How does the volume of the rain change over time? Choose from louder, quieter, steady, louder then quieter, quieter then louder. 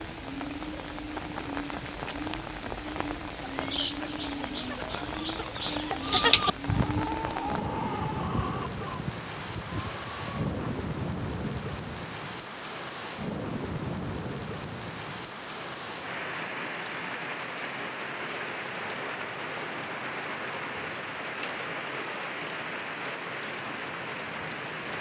steady.